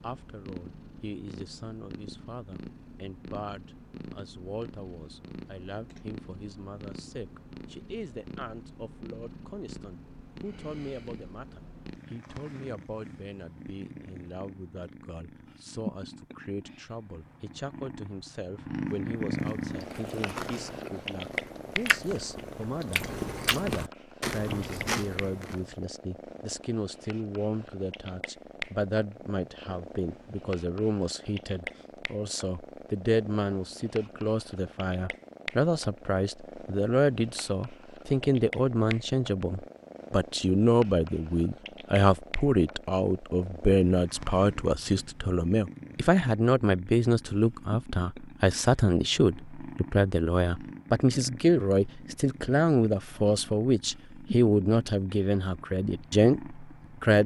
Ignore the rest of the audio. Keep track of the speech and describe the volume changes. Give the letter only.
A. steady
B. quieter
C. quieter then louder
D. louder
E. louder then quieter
D.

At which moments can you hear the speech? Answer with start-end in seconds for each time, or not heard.
0.0-57.2.